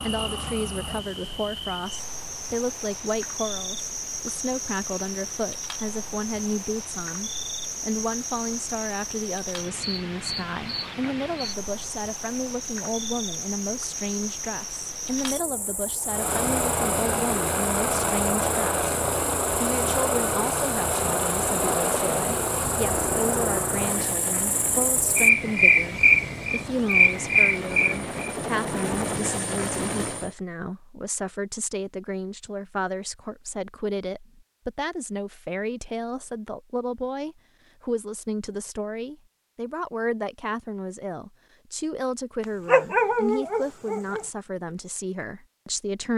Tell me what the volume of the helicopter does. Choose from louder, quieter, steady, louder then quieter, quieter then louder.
quieter then louder.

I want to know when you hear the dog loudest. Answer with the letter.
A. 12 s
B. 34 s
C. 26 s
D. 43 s
D.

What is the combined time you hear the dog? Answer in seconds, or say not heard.
2 s.